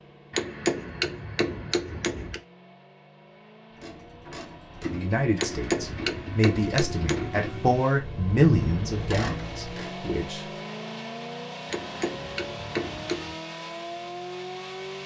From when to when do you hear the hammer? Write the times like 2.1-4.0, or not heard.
0.3-2.4, 5.3-7.3, 11.7-13.3.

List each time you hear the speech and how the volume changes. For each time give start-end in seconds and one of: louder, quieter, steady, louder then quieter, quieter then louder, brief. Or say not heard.
4.8-10.4 louder then quieter.